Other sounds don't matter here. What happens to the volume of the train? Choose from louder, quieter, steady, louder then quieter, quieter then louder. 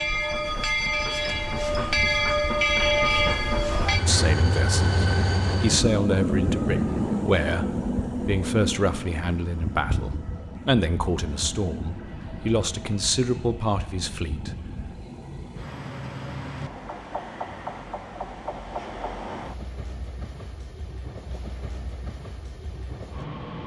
quieter.